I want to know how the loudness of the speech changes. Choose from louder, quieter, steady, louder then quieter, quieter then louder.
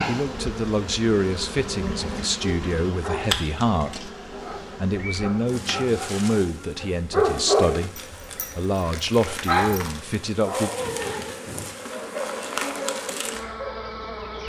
steady.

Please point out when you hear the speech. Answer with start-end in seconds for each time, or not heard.
0.1-10.7.